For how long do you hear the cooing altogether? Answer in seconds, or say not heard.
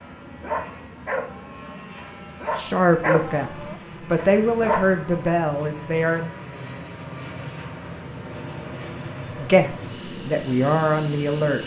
not heard.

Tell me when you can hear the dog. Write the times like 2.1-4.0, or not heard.
0.3-5.3.